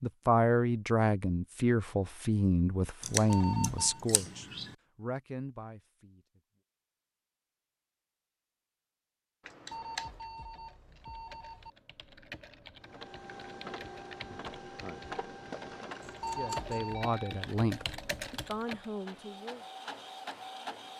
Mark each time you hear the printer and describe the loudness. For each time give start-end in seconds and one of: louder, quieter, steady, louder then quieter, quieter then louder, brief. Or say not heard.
12.8-20.9 quieter then louder.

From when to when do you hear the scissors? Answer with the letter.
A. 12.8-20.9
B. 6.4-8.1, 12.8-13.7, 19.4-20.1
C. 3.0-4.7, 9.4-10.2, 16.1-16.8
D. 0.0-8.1
C.